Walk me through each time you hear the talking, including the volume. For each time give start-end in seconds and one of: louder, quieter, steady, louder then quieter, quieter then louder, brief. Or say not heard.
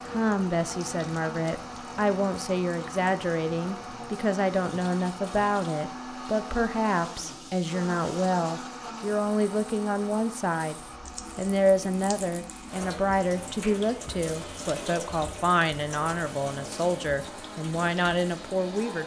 0.1-19.0 steady.